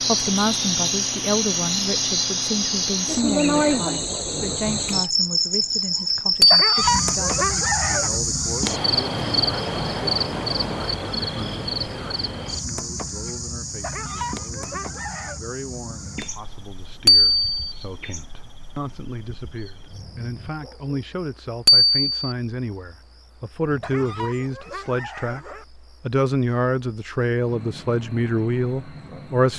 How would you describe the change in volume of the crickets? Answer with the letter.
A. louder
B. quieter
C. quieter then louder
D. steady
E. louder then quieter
B.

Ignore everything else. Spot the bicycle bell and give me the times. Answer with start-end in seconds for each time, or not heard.
6.4-6.8, 17.1-17.8, 21.6-22.4.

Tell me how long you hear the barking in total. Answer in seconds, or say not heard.
5 s.